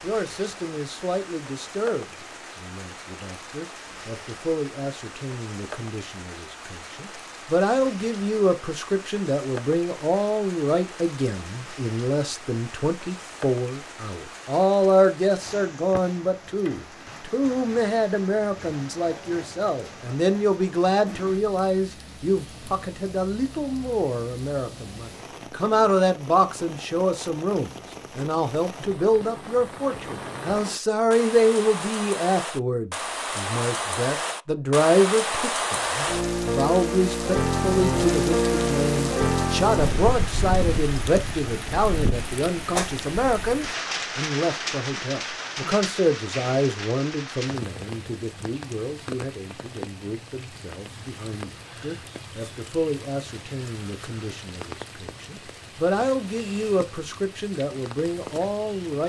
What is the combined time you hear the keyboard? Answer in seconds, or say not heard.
not heard.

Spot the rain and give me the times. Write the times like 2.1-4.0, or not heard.
0.0-59.0.